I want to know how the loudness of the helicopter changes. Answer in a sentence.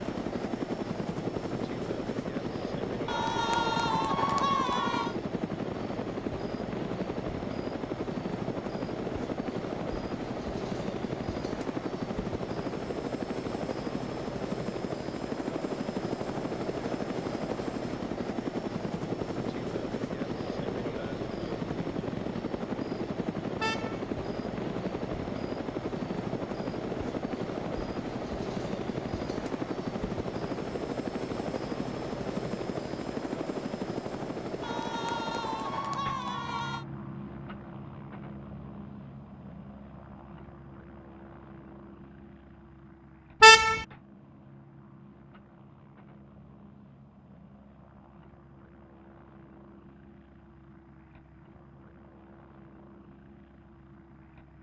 The loudness of the helicopter goes down.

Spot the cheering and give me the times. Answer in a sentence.
You can hear the cheering from 3.0 to 5.2 s and from 34.6 to 36.9 s.